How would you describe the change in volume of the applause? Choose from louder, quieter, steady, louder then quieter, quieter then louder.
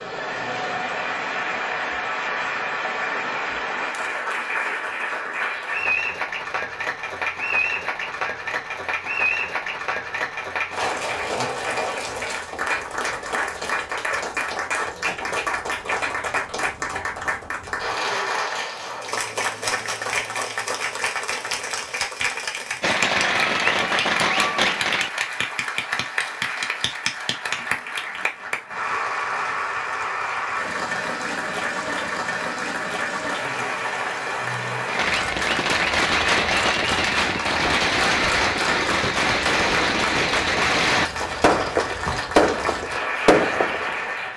steady.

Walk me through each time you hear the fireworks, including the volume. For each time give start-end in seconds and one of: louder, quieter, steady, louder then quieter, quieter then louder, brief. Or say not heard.
22.8-25.1 brief
34.9-44.1 steady.